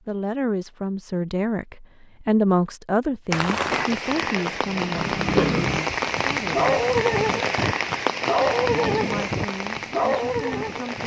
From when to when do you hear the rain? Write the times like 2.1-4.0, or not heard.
3.3-11.0.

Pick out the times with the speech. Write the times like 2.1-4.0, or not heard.
0.1-6.8, 9.0-11.0.